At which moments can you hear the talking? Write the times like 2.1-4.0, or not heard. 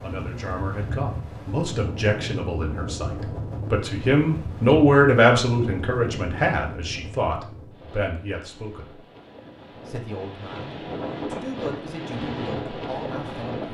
0.0-9.0, 9.8-13.6.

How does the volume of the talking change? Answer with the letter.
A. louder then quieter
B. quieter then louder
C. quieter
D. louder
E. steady
A.